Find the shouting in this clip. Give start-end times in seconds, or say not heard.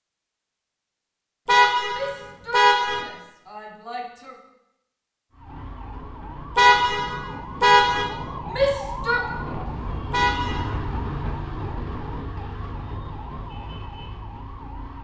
1.9-4.3, 8.5-9.3.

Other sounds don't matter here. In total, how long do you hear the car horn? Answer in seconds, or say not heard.
4 s.